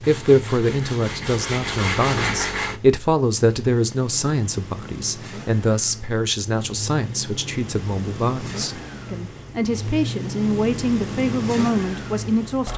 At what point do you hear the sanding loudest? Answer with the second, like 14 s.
2 s.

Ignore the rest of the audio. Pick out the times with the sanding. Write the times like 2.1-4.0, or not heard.
0.0-2.8.